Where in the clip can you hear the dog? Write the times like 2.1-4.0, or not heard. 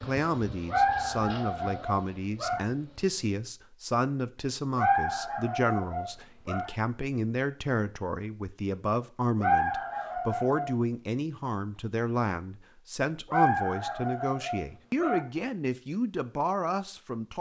0.7-2.6, 4.8-6.7, 9.4-10.7, 13.3-15.2.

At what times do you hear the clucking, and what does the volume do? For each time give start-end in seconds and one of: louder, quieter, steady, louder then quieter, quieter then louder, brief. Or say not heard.
not heard.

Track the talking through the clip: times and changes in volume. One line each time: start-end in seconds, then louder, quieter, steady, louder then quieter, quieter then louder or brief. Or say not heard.
0.0-17.3 steady.